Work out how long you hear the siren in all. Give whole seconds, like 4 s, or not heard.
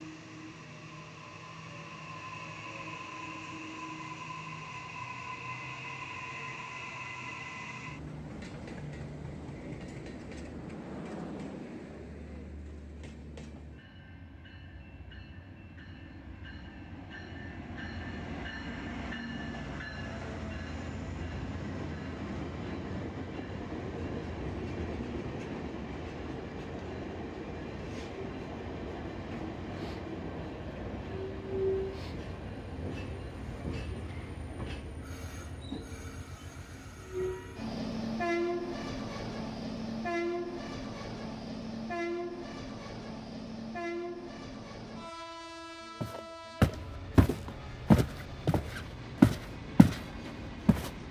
not heard.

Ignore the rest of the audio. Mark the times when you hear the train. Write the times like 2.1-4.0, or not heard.
0.0-51.0.